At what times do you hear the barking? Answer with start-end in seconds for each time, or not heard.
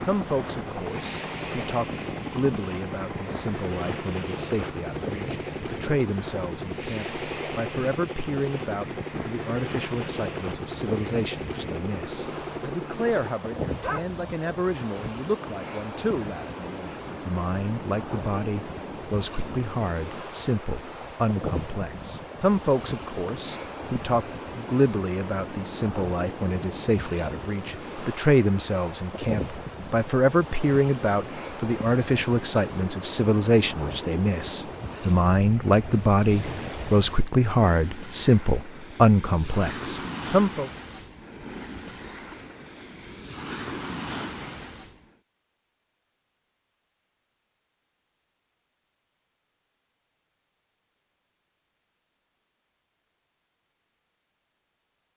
13.8-14.6.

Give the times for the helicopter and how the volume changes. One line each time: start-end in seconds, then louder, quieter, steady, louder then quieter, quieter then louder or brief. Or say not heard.
0.0-13.4 steady.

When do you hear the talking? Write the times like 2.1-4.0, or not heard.
0.1-40.7.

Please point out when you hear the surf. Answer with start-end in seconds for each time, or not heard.
0.0-45.1.